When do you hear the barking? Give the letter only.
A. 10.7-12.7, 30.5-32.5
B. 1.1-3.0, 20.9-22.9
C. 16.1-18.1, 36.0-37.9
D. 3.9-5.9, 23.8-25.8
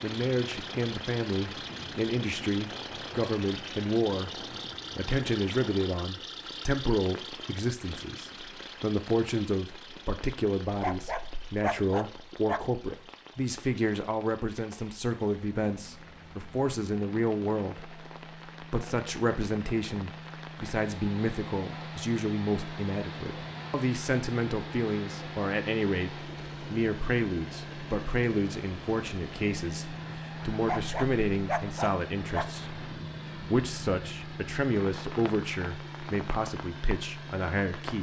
A.